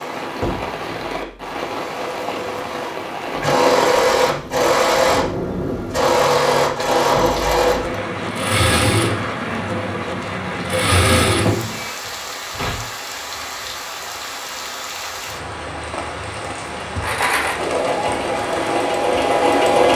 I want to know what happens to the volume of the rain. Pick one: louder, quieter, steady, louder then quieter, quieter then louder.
steady.